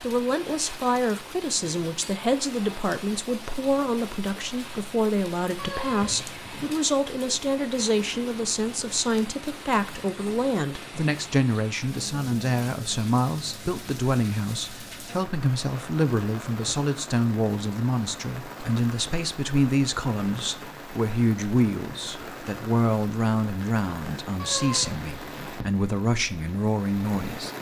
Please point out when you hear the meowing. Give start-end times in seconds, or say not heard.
5.5-6.8, 24.4-25.6.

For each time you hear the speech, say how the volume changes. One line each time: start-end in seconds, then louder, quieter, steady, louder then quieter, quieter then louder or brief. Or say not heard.
0.0-27.5 steady.